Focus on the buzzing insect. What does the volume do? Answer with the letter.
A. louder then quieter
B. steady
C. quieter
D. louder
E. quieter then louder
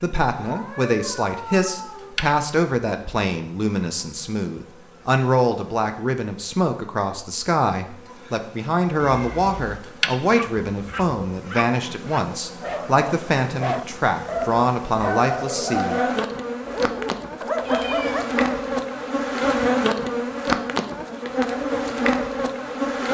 E.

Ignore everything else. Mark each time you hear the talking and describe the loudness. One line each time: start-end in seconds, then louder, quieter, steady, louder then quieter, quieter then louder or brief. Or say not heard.
0.0-16.0 steady.